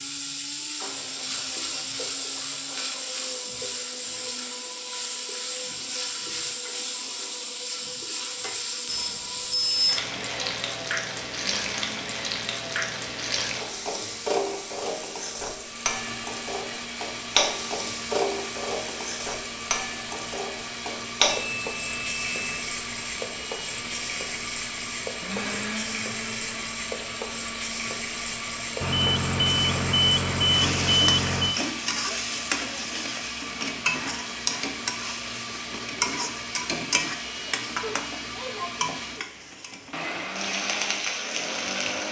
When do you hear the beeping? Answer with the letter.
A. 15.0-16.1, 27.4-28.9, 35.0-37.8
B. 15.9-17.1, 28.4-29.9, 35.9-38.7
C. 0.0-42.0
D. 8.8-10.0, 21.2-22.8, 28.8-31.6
D.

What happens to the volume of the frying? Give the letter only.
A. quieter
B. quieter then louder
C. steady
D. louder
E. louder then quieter
C.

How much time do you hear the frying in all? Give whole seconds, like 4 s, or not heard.
42 s.